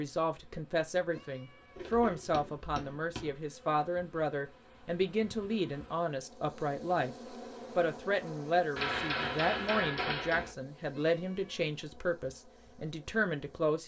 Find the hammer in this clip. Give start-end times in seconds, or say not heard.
1.8-3.4, 8.8-10.6.